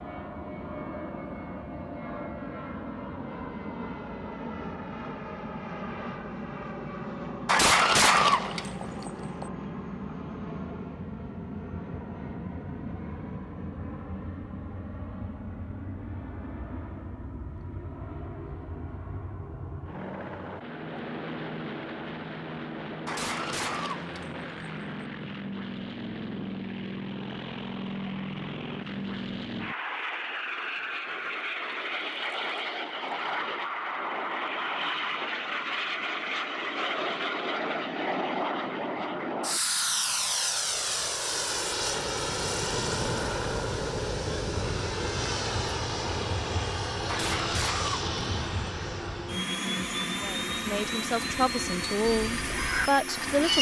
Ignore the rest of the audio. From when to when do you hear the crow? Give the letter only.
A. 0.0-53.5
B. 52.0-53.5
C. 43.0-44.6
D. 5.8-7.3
B.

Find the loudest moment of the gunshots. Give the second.
8 s.